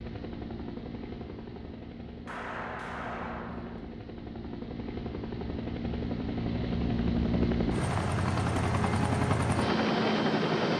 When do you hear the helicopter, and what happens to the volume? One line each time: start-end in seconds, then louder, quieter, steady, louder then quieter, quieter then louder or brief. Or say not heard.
0.0-10.7 louder.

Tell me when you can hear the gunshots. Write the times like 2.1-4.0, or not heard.
2.2-3.8.